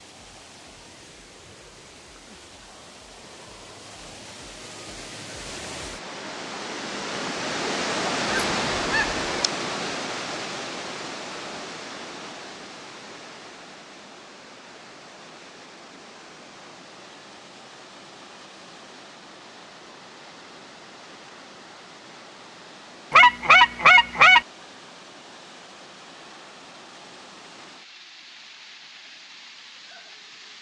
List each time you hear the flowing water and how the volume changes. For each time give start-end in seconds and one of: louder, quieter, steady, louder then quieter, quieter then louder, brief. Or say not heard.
0.0-30.5 louder then quieter.